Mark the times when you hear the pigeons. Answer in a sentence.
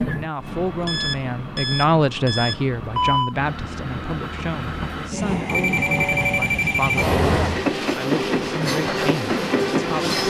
The pigeons can't be heard in this clip.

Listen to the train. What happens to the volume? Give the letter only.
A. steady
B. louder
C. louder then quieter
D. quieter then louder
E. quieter
B.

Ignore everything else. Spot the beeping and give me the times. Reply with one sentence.
The beeping can be heard from 0.8 to 3.4 s and from 5.5 to 7.0 s.